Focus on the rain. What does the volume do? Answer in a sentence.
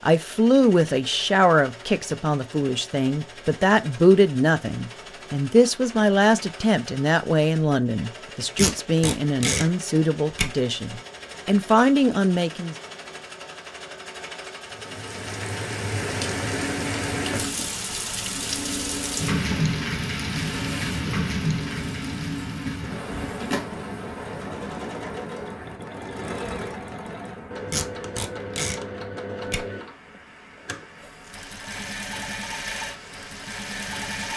The volume of the rain goes down.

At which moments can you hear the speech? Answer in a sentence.
The speech can be heard from 0.0 to 12.8 s.